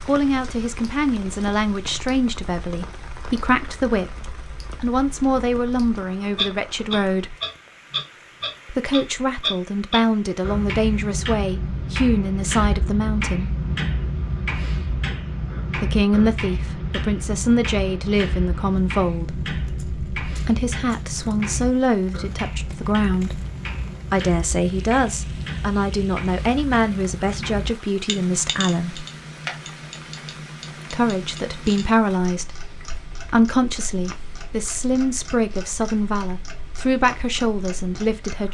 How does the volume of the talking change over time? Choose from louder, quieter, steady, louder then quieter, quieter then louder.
steady.